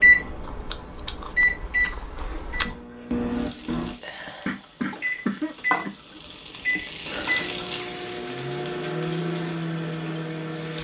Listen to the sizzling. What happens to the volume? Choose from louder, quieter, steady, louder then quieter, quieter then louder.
louder then quieter.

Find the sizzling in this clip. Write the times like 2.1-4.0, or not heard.
3.2-10.8.